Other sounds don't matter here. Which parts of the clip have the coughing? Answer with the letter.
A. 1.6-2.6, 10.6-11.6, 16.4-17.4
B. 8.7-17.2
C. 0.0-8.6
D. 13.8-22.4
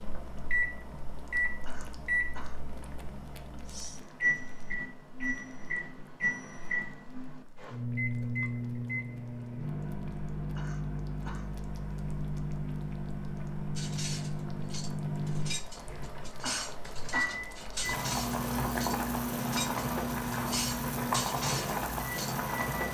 A.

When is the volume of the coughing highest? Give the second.
17 s.